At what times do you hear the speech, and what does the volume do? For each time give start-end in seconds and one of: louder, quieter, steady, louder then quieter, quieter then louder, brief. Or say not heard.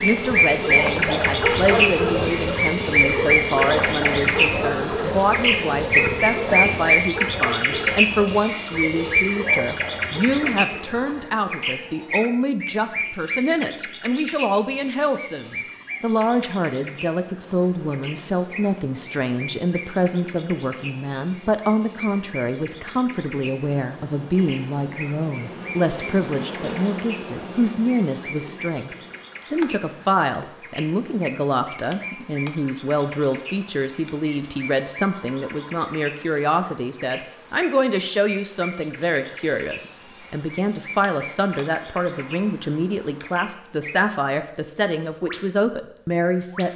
0.0-46.7 steady.